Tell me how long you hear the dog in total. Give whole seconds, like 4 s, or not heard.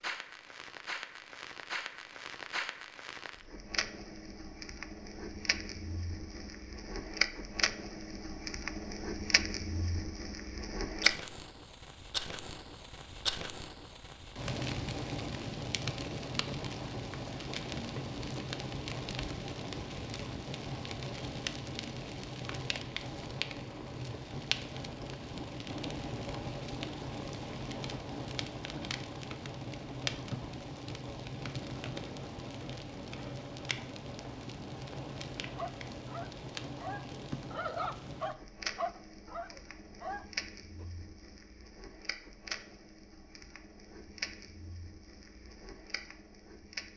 5 s.